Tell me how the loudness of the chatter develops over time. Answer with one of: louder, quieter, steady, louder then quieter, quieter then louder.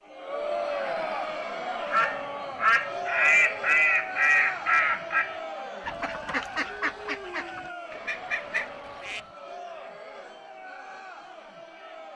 quieter.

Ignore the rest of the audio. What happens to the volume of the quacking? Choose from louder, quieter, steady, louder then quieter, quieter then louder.
quieter.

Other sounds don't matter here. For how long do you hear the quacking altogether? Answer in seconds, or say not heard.
7 s.